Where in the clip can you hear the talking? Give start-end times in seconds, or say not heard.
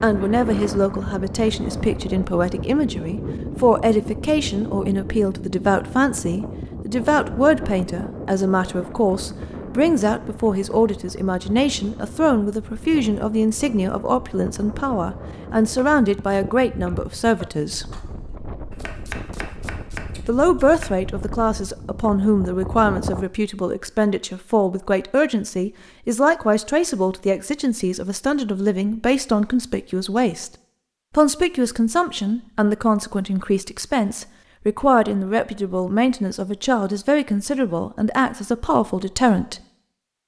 0.0-17.9, 20.2-30.5, 31.1-39.6.